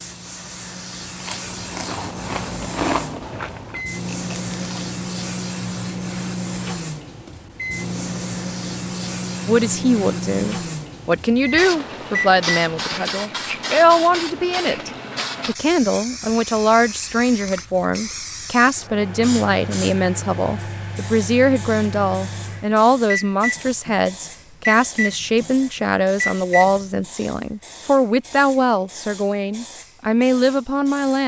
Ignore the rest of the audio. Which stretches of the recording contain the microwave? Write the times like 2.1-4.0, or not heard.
0.0-13.1, 18.8-27.1.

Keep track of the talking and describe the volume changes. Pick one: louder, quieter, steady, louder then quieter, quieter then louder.
steady.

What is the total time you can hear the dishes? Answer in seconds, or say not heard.
not heard.